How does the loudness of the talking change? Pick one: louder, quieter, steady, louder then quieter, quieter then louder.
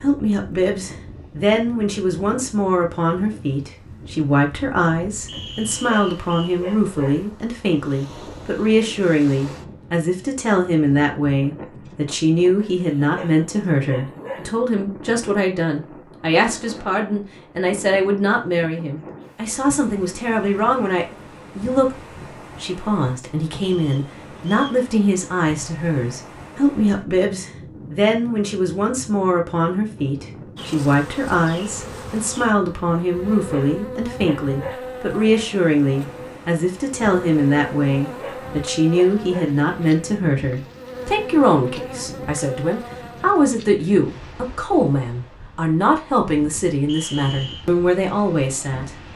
steady.